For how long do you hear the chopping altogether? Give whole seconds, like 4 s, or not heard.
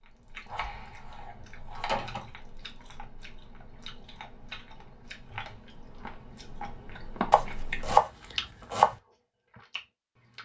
3 s.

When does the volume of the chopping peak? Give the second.
8 s.